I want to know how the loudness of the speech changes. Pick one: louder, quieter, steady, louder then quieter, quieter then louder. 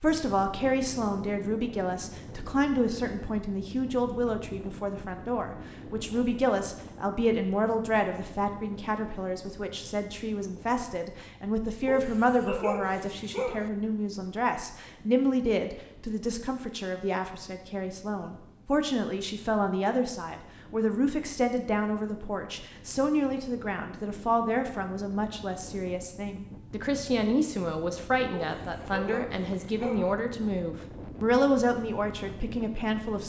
steady.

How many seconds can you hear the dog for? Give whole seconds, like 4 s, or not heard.
4 s.